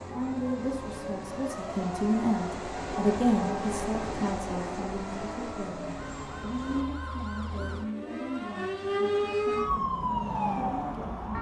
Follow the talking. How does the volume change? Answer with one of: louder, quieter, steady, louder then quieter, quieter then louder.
quieter.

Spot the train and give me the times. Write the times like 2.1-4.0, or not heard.
0.0-6.8.